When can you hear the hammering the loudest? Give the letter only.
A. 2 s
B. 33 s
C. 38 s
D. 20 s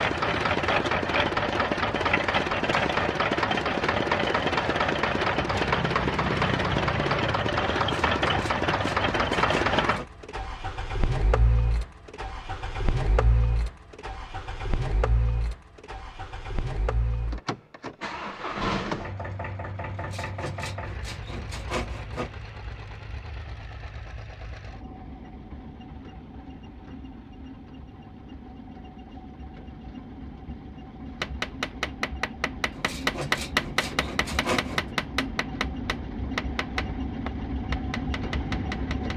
B.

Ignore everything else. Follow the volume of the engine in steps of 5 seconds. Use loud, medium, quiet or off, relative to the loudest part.
loud, loud, medium, medium, quiet, quiet, quiet, medium.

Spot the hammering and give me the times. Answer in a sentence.
You can hear the hammering from 31.2 to 39.1 s.